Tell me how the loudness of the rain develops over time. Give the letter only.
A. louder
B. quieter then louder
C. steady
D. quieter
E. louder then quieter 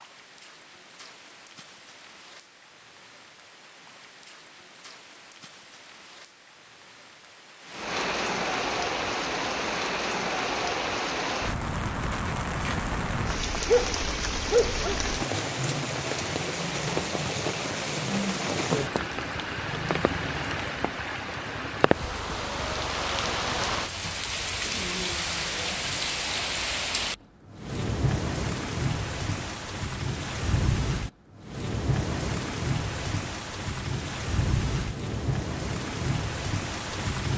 A.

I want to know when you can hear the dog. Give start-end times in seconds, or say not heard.
13.7-15.1.